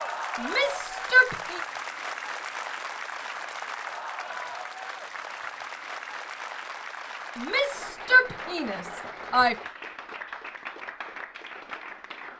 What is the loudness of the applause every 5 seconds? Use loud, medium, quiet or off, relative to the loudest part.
loud, loud, medium.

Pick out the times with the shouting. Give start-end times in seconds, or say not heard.
0.3-1.6, 7.3-9.6.